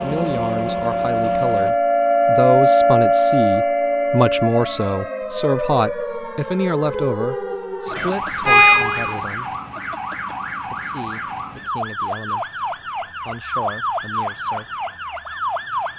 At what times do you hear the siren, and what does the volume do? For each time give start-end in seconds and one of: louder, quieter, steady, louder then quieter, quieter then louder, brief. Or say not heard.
0.0-15.9 quieter.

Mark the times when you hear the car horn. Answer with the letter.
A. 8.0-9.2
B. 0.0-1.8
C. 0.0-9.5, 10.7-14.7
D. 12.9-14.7
A.